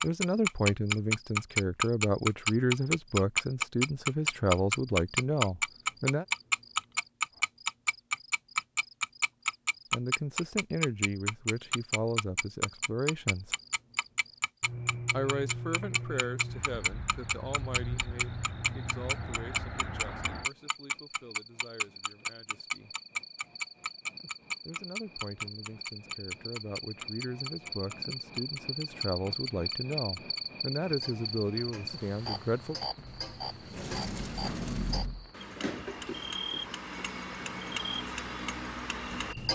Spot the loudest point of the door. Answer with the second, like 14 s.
35 s.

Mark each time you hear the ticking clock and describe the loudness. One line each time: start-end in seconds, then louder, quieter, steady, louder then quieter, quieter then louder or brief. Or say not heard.
0.0-39.5 quieter.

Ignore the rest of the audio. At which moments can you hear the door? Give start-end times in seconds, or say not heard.
33.0-35.3.